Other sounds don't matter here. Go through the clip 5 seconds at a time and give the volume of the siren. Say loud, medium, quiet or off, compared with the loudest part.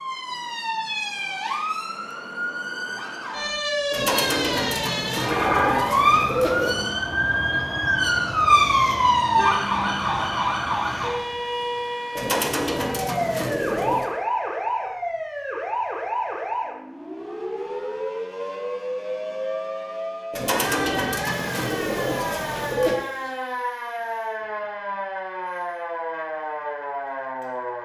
medium, loud, medium, medium, medium, medium.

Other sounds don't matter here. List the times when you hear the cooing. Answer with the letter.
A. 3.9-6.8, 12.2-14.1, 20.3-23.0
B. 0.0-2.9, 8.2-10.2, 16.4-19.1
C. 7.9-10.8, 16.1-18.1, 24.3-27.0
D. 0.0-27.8
A.